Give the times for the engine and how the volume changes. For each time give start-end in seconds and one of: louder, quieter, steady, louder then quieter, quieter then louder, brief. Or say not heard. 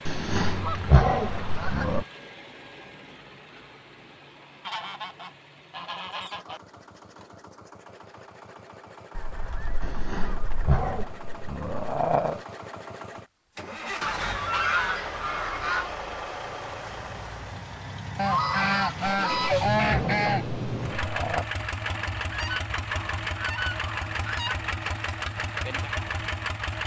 0.0-26.8 louder.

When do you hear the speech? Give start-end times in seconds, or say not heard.
not heard.